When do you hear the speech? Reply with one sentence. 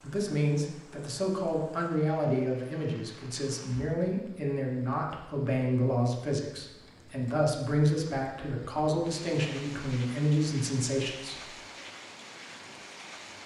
You can hear the speech from 0.0 to 11.5 s.